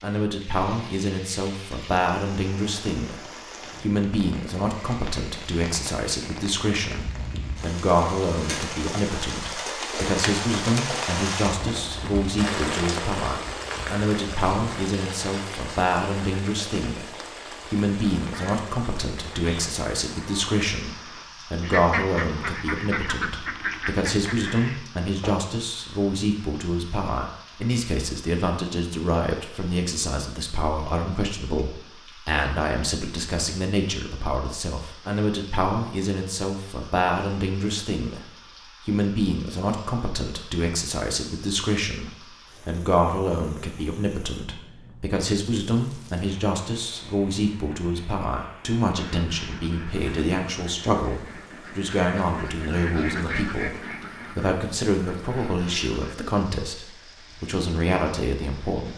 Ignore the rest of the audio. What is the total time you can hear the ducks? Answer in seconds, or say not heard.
14 s.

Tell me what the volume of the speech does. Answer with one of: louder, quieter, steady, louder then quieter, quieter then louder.
steady.